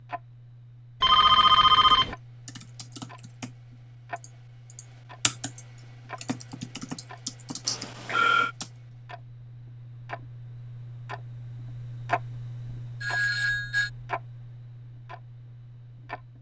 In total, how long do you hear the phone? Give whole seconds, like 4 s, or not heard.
3 s.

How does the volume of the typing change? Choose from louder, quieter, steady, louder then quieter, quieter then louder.
quieter then louder.